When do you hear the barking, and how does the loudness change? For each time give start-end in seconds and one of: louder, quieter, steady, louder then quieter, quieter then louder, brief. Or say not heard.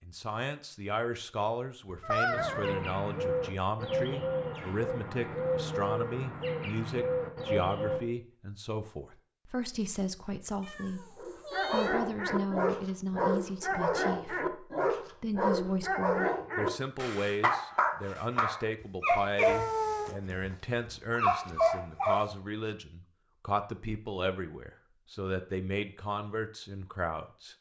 11.2-22.3 steady.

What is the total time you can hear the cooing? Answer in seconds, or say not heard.
6 s.